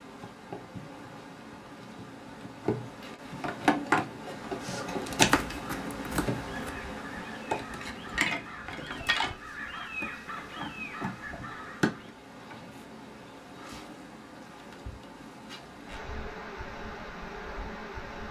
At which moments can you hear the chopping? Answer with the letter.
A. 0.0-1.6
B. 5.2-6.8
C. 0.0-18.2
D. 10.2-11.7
B.